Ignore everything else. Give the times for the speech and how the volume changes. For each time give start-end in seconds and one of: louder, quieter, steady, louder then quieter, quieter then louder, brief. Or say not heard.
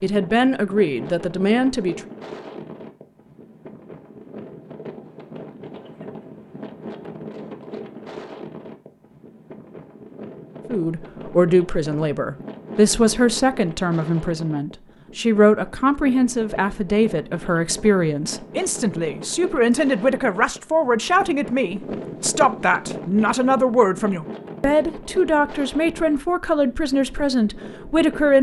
0.0-2.0 brief
10.7-28.3 steady.